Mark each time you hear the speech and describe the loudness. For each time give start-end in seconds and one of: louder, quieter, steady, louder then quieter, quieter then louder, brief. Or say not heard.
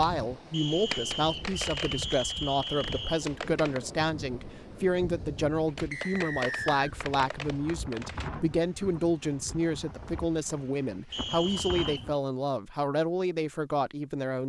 0.0-14.4 steady.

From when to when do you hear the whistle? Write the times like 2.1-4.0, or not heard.
0.5-3.2, 5.9-6.9, 11.1-12.2.